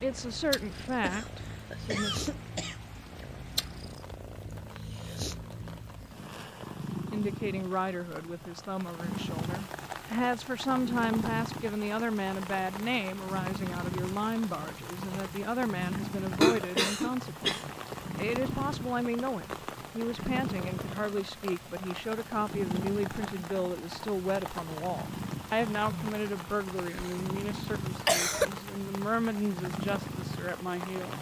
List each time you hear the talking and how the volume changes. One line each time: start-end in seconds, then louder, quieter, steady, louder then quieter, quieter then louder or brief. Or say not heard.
0.0-2.2 brief
7.1-31.1 steady.